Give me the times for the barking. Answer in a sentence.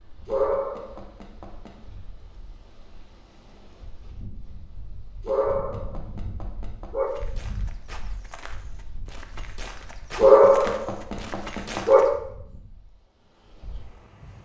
You can hear the barking from 0.2 to 1.7 s, from 5.2 to 7.1 s and from 10.2 to 12.0 s.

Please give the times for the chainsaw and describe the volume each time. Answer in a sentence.
You can't hear the chainsaw here.